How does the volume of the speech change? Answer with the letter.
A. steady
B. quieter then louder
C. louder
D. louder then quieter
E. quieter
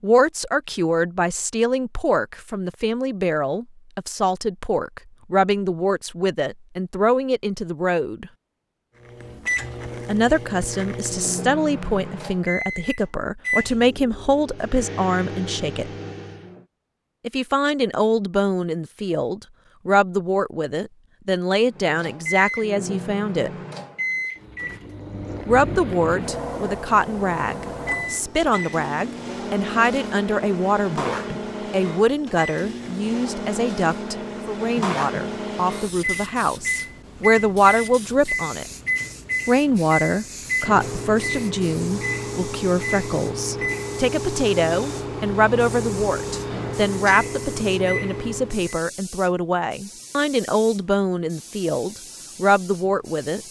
A.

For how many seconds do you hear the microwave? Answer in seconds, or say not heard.
35 s.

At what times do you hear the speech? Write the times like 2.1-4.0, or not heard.
0.0-8.3, 10.1-15.9, 17.2-23.5, 25.4-38.6, 39.5-53.4.